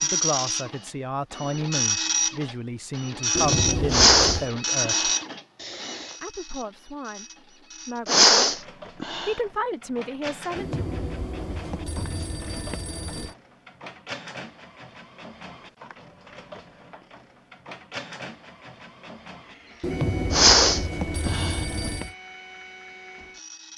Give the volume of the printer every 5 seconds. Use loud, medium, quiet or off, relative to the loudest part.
loud, medium, quiet, quiet, quiet.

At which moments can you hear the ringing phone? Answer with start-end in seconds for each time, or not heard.
3.4-4.5, 10.6-13.3, 19.8-22.1.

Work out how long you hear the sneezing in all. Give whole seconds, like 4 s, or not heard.
5 s.